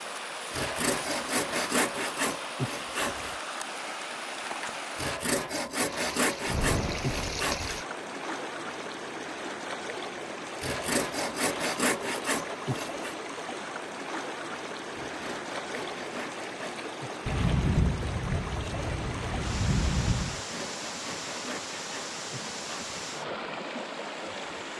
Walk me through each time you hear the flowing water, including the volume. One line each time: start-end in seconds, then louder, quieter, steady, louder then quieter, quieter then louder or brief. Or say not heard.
0.0-24.7 steady.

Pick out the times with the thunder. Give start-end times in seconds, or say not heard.
6.5-7.8, 17.2-20.4.